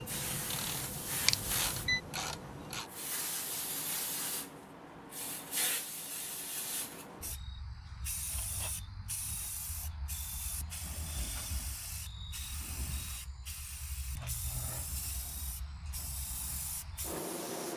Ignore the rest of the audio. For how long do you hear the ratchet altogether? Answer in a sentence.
You can hear the ratchet for 3 seconds altogether.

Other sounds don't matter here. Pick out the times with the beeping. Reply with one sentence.
You can hear the beeping from 1.2 to 2.0 s.